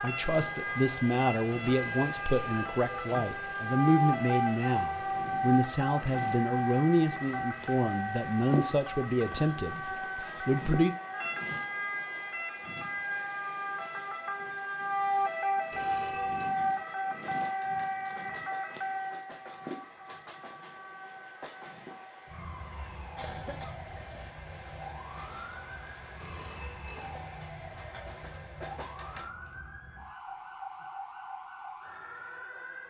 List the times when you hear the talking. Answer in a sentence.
The talking can be heard from 0.0 to 10.9 s.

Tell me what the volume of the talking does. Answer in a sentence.
The loudness of the talking stays about the same.